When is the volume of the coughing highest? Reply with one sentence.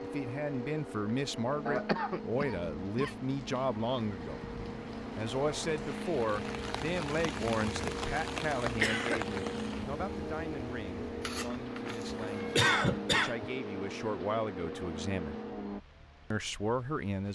The loudest moment of the coughing is at 13 seconds.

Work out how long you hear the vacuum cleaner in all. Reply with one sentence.
You can hear the vacuum cleaner for 16 seconds altogether.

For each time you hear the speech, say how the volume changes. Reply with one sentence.
The speech can be heard from 0.0 to 4.5 s, at a steady volume; from 5.2 to 15.3 s, getting quieter then louder; and briefly from 16.3 to 17.3 s.